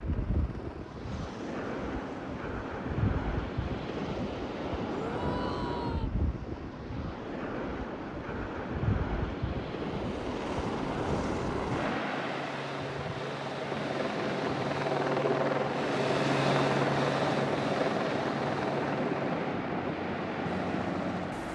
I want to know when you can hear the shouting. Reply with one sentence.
The shouting can be heard from 4.8 to 6.1 s.